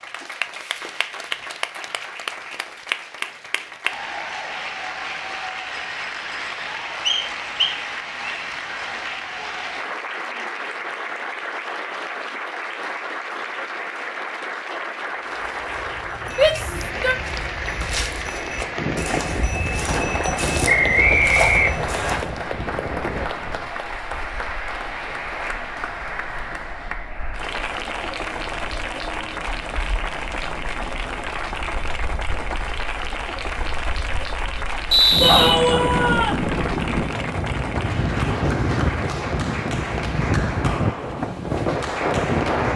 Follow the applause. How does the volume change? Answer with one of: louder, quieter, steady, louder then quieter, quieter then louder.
steady.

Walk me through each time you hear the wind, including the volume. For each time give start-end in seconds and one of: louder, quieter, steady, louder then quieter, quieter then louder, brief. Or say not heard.
18.8-42.7 quieter then louder.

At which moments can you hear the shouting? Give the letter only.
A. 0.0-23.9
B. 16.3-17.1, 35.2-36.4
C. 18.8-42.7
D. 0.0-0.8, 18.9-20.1
B.